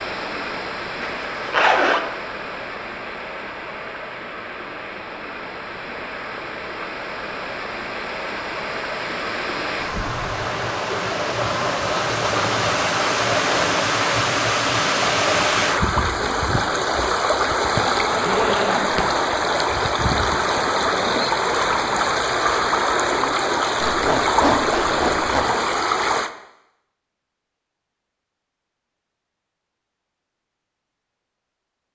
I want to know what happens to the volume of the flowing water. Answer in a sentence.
The loudness of the flowing water goes up.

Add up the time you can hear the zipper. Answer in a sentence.
You can hear the zipper for 4 seconds altogether.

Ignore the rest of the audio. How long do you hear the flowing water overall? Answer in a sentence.
The flowing water can be heard for 26 seconds in total.